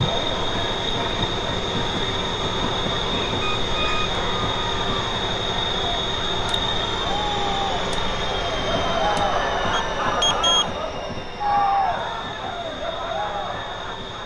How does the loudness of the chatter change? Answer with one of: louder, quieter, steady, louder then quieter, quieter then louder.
louder.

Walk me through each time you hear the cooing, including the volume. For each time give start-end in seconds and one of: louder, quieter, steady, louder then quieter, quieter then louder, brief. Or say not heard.
not heard.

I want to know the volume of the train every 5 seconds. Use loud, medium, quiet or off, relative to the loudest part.
loud, loud, medium.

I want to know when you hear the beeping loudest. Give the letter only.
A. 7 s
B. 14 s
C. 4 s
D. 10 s
D.